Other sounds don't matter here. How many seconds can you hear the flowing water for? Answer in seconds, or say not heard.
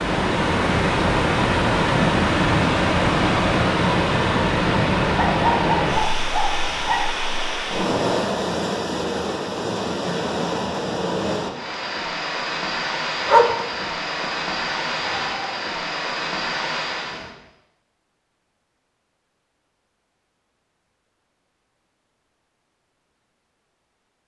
17 s.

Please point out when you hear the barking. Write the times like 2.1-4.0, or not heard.
5.1-7.0, 13.2-15.5.